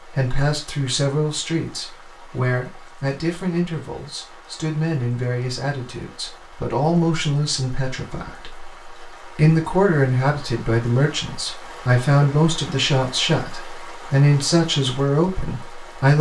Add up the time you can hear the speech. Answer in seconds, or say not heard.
16 s.